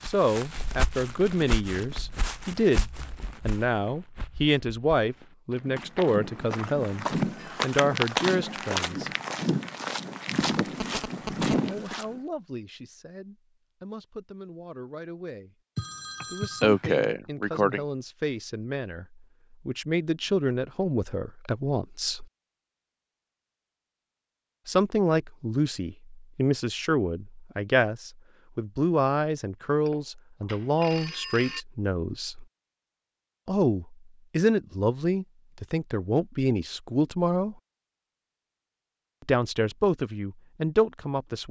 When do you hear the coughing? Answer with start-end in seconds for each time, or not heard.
16.6-17.8.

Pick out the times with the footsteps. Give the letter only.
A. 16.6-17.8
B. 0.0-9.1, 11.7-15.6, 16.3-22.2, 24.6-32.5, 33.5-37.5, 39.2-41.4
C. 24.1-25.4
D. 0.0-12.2
D.